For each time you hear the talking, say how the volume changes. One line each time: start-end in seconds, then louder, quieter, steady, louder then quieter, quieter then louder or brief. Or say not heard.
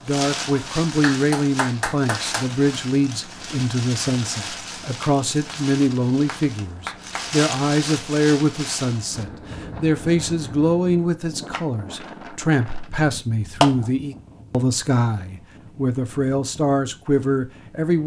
0.1-18.0 steady.